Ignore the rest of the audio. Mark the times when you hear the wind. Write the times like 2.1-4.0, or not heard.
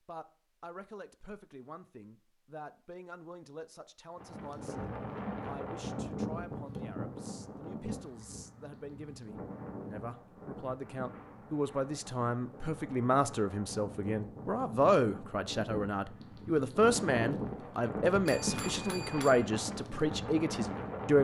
4.2-21.1.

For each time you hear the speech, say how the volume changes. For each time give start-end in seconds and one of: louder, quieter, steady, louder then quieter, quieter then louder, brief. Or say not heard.
0.1-21.1 louder.